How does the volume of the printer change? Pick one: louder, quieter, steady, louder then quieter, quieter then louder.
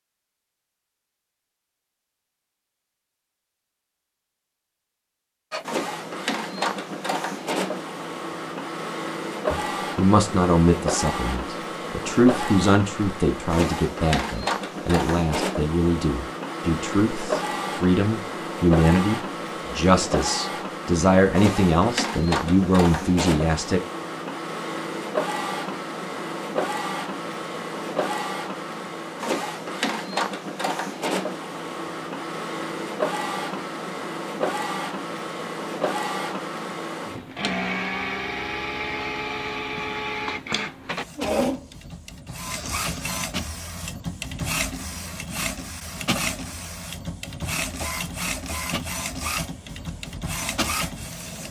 steady.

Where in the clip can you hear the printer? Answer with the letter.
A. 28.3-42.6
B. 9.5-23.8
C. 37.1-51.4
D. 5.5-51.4
D.